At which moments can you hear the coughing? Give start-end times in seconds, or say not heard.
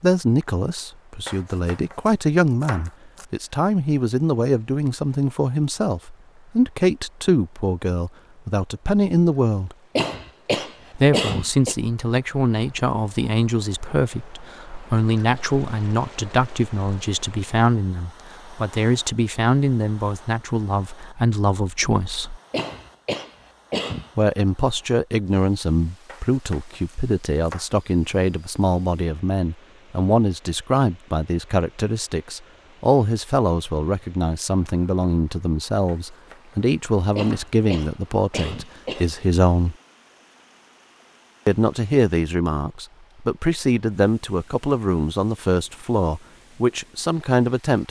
9.9-11.8, 22.5-24.1, 37.1-39.1.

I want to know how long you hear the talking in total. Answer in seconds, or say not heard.
43 s.